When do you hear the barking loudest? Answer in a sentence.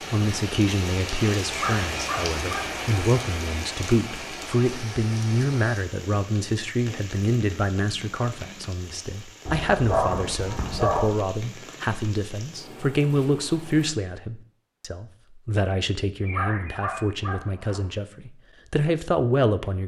The volume of the barking peaks at 10 seconds.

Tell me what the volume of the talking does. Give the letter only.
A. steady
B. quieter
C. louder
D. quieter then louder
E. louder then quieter
A.